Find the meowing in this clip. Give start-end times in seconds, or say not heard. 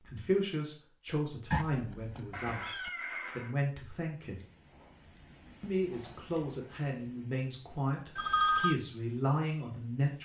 2.3-3.5.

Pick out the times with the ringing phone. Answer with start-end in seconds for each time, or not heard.
1.5-2.9, 8.2-8.8.